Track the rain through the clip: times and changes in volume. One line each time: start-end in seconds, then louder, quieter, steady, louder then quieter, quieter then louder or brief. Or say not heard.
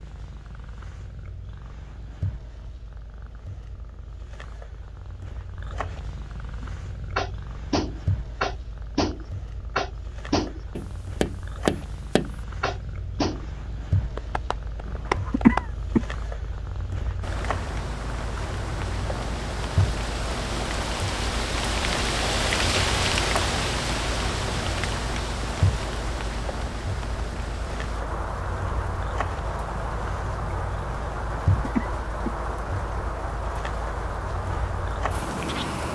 17.2-35.9 louder then quieter.